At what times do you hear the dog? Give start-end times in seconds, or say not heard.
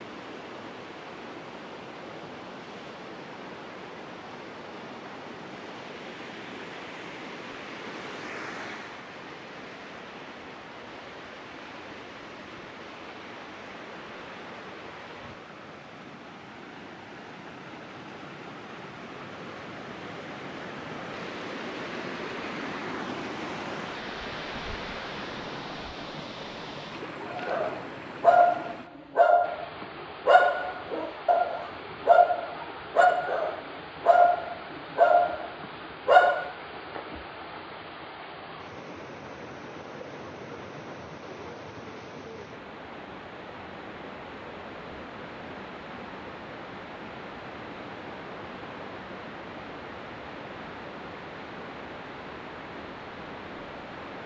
27.3-36.5.